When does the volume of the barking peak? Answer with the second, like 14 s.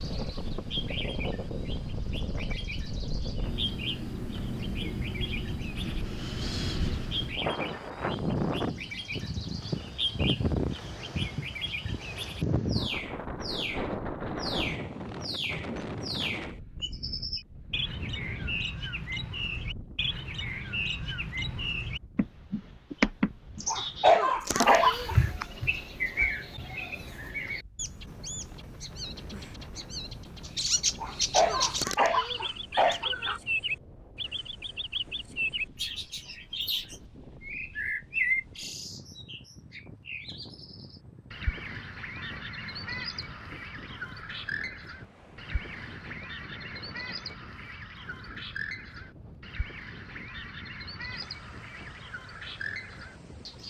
24 s.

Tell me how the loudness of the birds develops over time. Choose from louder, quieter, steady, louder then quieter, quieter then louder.
louder then quieter.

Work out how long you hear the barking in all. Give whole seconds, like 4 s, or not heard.
4 s.